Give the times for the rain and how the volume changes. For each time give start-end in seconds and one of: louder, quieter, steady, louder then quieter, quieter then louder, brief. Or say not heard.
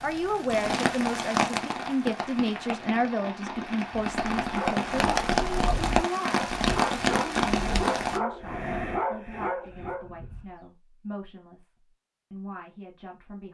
0.0-8.2 quieter then louder.